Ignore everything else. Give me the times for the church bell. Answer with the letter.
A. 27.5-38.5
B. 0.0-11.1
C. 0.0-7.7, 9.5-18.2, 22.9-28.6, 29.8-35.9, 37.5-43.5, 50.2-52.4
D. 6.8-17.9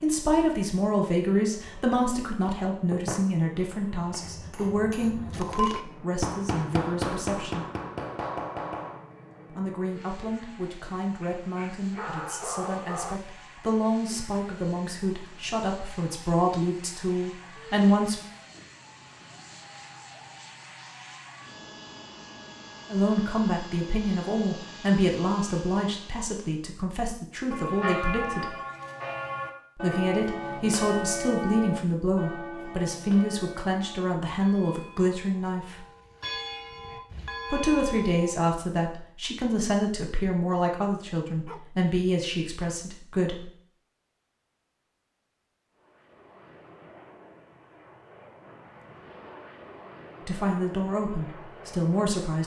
A.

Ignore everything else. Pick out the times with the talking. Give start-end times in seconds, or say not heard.
0.0-7.7, 9.5-18.2, 22.9-28.6, 29.8-35.9, 37.5-43.5, 50.2-52.4.